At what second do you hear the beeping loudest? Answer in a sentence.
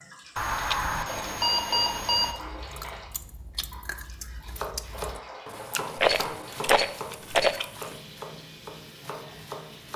The volume of the beeping peaks at 2 seconds.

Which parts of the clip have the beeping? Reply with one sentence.
You can hear the beeping from 0.3 to 2.4 s.